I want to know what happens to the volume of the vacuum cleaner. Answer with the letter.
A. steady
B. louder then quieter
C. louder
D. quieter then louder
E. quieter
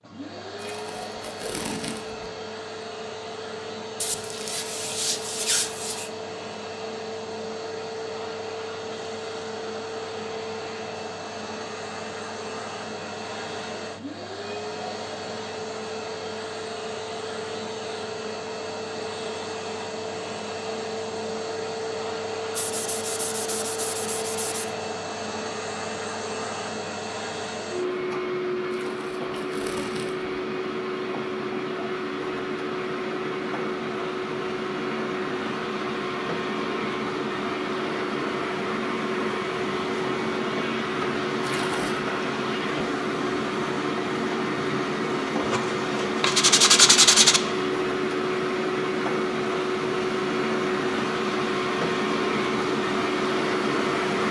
C.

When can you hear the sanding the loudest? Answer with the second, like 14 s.
47 s.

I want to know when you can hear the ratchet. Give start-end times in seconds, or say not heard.
not heard.